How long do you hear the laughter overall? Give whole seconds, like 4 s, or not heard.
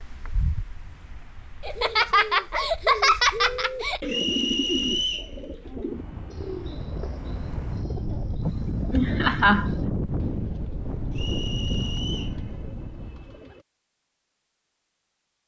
4 s.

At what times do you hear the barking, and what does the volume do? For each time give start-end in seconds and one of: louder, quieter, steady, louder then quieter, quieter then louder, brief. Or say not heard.
not heard.